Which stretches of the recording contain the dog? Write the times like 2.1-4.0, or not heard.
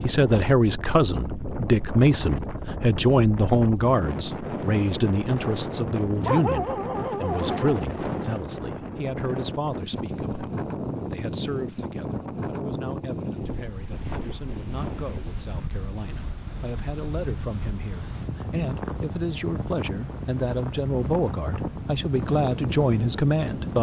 6.2-7.8.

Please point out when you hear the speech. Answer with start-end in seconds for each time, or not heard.
0.0-23.7.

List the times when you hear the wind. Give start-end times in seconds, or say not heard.
0.0-23.7.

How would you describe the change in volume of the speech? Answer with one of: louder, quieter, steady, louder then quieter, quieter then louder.
quieter then louder.